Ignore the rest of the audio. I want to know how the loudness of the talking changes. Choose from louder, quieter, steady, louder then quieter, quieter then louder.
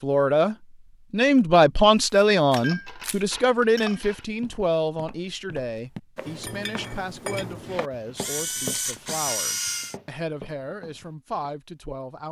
quieter.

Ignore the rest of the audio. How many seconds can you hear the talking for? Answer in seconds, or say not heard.
12 s.